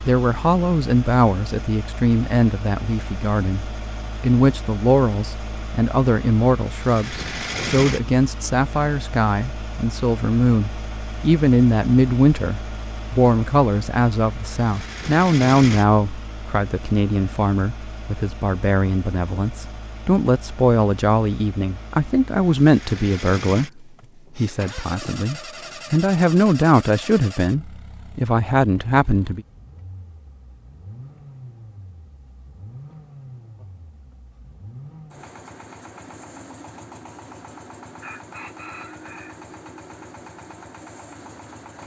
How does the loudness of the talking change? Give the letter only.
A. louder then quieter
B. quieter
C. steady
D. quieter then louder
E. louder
C.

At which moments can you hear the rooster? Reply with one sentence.
You can hear the rooster from 38.0 to 39.4 s.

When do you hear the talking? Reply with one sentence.
The talking can be heard from 0.0 to 29.4 s.